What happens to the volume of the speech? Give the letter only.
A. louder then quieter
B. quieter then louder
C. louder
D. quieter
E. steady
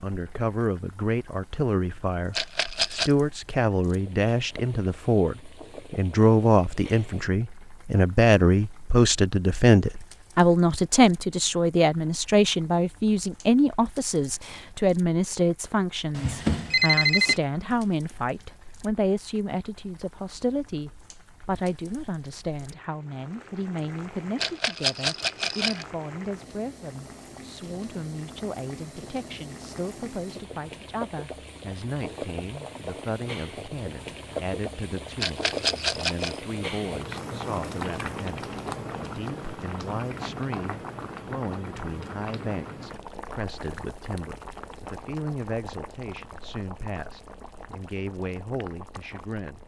D.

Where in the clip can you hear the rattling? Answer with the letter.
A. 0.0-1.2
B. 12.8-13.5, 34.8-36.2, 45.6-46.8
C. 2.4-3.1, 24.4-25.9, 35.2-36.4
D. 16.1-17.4
C.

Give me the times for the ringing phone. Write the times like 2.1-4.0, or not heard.
16.1-17.4.